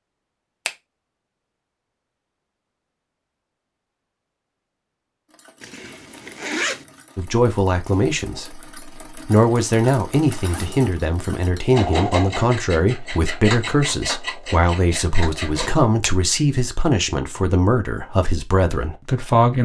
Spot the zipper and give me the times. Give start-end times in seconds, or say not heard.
5.6-6.8, 10.3-10.8.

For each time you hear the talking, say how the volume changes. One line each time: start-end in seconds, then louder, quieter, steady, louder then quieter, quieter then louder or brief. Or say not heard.
7.2-19.6 steady.